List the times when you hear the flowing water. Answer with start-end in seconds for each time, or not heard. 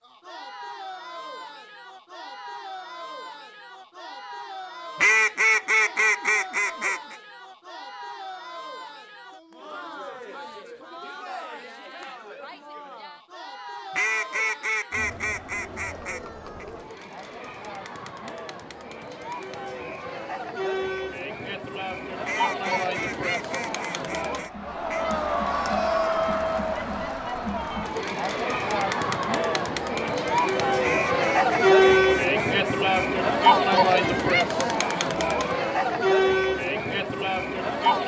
not heard.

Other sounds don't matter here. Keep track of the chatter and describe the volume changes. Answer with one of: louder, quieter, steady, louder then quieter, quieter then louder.
louder.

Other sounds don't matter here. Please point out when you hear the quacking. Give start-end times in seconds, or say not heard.
5.0-7.2, 13.9-16.6, 22.2-25.1, 30.8-33.0.